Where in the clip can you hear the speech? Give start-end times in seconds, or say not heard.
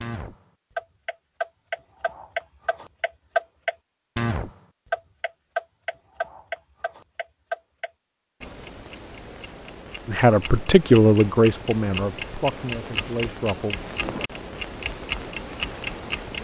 10.1-13.8.